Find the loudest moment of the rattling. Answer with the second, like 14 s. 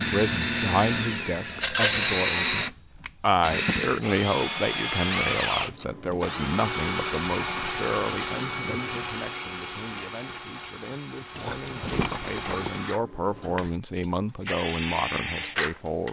2 s.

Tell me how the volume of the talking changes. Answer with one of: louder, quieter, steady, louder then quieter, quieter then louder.
quieter then louder.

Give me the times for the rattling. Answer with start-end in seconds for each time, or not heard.
1.6-2.2, 11.3-12.8.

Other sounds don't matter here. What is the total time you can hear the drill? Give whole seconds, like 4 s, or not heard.
16 s.